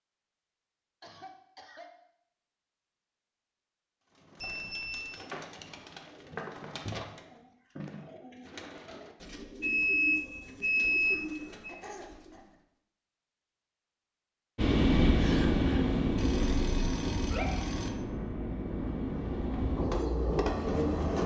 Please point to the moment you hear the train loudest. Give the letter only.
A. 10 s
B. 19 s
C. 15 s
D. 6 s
C.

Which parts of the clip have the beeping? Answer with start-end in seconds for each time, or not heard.
4.4-5.0, 9.6-11.8, 16.1-17.9.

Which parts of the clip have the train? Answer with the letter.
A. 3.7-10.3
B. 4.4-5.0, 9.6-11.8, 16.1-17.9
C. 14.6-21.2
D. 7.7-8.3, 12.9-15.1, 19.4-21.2
C.